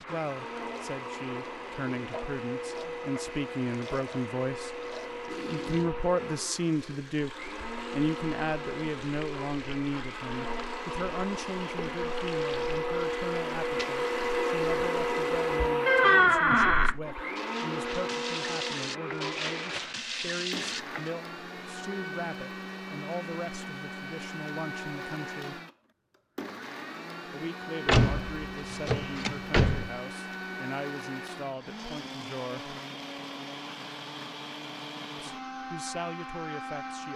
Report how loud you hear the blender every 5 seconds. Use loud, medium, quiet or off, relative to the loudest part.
medium, medium, loud, loud, medium, medium, medium, medium.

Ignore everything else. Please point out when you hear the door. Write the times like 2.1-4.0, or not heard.
15.8-16.9, 27.9-29.9.